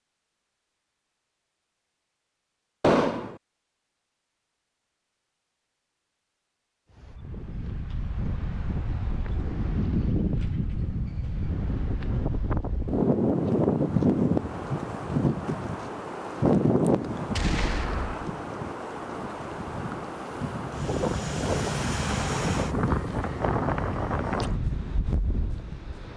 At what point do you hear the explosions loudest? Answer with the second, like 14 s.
3 s.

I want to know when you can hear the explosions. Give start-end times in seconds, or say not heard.
2.8-3.4, 17.3-18.3.